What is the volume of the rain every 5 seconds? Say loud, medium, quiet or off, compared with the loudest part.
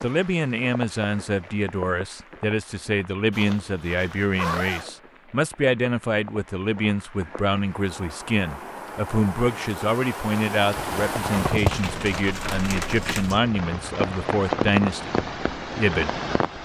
medium, medium, loud, loud.